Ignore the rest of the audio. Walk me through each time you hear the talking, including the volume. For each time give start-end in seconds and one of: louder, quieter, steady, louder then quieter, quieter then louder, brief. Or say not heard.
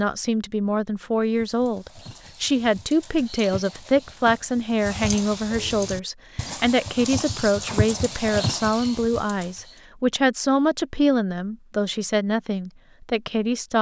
0.0-13.7 steady.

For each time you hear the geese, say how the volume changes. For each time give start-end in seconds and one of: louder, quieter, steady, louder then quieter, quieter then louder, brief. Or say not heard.
not heard.